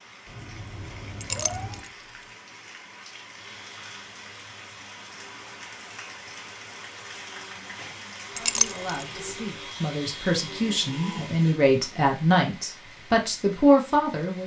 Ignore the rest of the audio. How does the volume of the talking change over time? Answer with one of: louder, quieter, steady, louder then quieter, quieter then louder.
louder.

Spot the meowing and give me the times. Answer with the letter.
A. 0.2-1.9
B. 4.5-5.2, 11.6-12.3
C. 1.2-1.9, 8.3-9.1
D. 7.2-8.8
A.